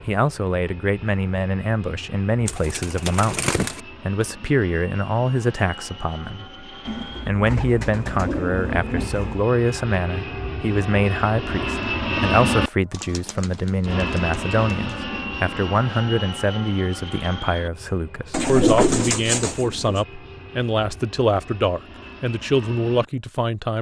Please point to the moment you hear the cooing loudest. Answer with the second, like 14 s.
19 s.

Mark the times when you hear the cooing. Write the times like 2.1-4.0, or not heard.
2.5-3.8, 6.8-9.4, 12.9-14.9, 18.3-20.1.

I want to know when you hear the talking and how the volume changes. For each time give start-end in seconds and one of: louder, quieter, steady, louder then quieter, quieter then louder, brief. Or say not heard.
0.1-23.7 steady.